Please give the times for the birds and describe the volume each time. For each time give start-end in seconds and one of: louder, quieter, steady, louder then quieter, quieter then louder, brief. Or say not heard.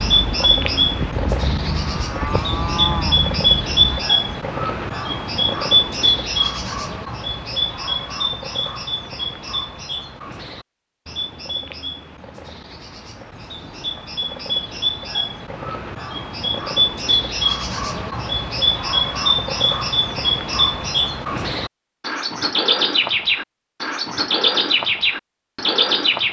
0.0-26.2 quieter then louder.